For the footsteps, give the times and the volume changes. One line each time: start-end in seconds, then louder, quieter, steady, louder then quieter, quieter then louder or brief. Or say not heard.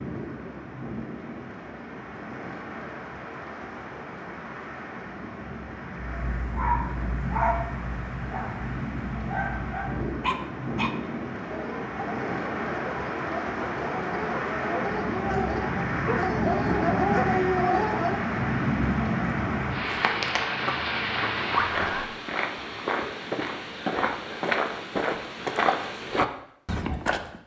19.9-27.4 louder.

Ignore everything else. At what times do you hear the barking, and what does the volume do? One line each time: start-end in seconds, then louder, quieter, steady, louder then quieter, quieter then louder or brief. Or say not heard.
6.0-18.2 quieter then louder.